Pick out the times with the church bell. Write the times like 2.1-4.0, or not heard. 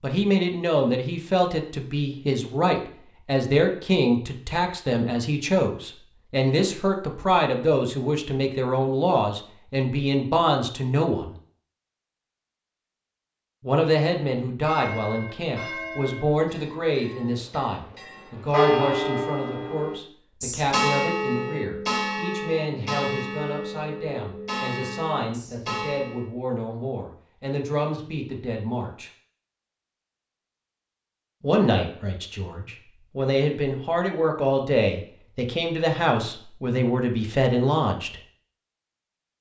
14.7-26.2.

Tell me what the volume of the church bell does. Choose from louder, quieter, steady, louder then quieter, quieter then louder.
louder then quieter.